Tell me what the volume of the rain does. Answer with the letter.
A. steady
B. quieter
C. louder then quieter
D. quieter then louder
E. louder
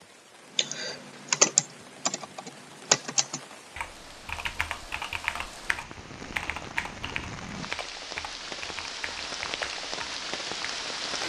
E.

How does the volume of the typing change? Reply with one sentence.
The volume of the typing goes down.